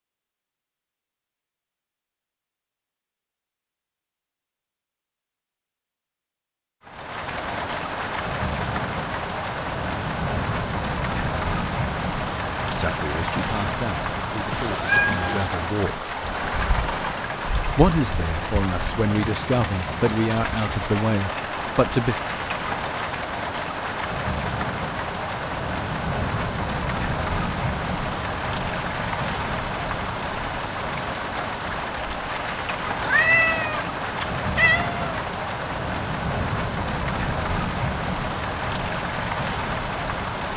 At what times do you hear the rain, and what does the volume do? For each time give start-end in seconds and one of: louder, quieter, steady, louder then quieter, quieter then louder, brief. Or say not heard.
6.8-40.5 steady.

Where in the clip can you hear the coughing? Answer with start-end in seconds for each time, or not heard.
not heard.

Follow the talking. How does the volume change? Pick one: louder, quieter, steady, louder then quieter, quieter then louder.
louder.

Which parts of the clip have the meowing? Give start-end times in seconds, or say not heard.
14.5-15.5, 33.0-35.2.